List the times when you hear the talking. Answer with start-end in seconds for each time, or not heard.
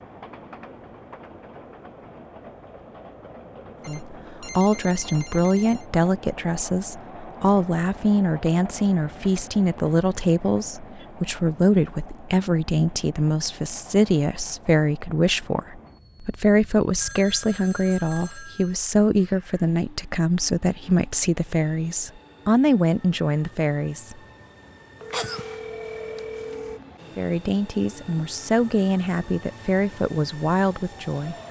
3.9-24.1, 27.1-31.4.